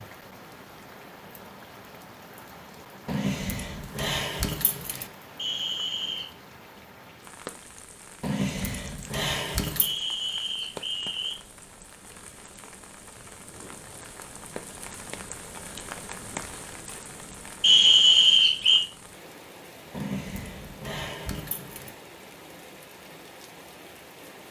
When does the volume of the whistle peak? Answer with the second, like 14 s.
18 s.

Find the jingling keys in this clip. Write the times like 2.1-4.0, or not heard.
3.0-5.1, 8.2-9.9, 19.9-21.9.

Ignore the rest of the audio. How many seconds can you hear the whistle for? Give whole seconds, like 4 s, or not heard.
4 s.